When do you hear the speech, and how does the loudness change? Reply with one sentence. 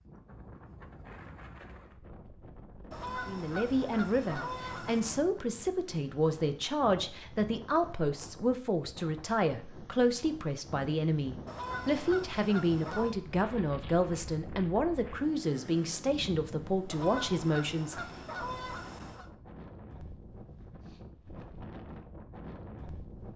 The speech can be heard from 3.2 to 17.9 s, at a steady volume.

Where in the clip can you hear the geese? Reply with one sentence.
You can hear the geese from 2.9 to 5.2 s, from 11.4 to 13.2 s and from 16.9 to 19.3 s.